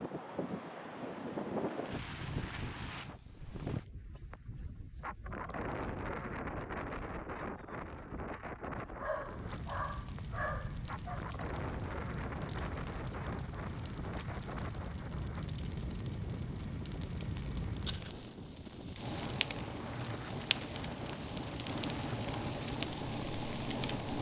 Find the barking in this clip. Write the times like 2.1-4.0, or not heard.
8.9-11.2.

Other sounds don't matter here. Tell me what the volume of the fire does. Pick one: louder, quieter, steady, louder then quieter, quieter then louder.
louder.